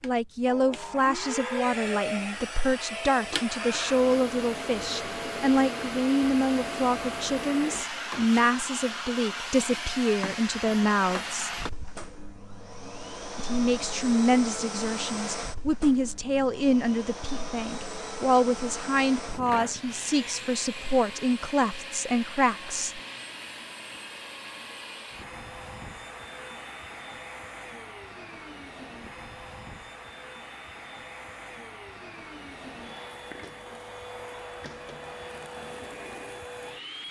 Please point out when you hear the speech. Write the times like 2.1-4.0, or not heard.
0.0-11.6, 13.3-23.0.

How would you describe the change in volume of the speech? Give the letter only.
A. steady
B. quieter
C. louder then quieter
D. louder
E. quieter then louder
A.